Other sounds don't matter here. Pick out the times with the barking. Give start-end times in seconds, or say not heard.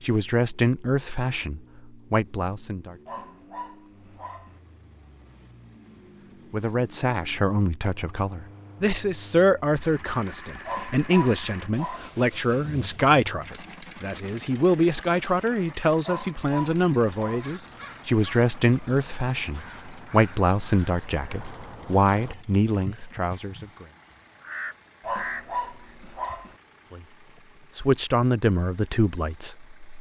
3.0-4.6, 10.7-12.2, 16.1-17.6, 25.0-26.6.